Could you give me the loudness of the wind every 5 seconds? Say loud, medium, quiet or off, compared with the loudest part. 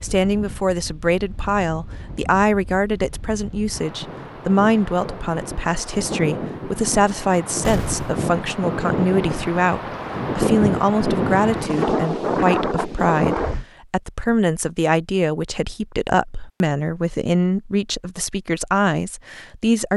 quiet, medium, loud, off.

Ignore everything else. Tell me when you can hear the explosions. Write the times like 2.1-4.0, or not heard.
7.6-8.2.